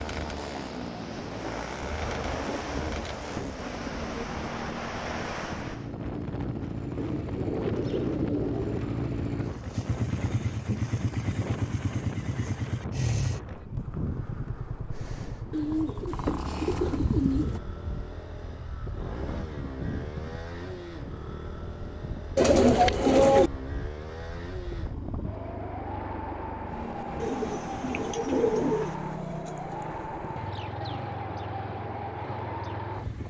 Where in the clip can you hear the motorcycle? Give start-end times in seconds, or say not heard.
0.0-33.2.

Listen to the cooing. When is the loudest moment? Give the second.
23 s.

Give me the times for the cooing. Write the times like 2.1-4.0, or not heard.
1.8-4.4, 7.0-8.8, 15.5-17.6, 22.4-23.5, 27.2-28.9.